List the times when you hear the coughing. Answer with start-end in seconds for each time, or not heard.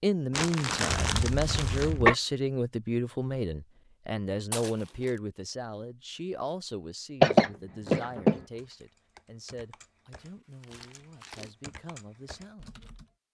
0.8-2.1, 7.2-8.4.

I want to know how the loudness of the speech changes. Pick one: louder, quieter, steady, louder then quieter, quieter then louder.
quieter.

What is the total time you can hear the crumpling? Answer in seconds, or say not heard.
4 s.